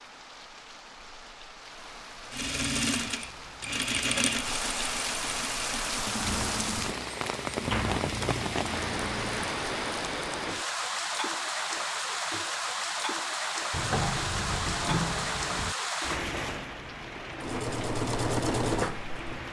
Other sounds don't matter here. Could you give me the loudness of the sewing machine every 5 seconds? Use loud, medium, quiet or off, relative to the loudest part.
loud, medium, off, loud.